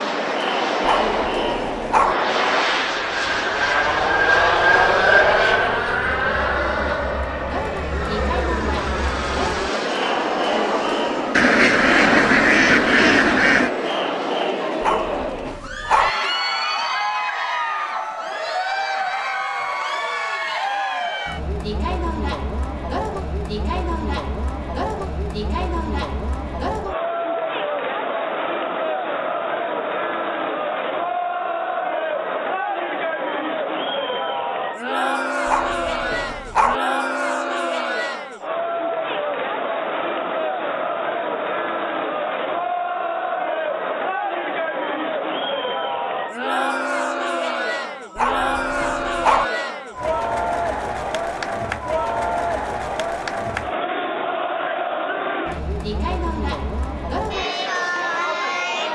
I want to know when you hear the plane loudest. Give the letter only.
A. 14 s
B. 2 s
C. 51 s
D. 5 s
D.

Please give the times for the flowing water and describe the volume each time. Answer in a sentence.
The flowing water can't be heard in this clip.